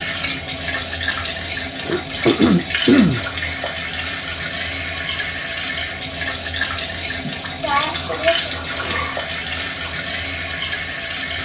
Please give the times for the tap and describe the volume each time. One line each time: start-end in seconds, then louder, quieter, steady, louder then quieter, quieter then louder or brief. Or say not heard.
0.0-11.4 steady.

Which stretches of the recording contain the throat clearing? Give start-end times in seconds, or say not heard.
1.9-3.2, 7.2-9.9.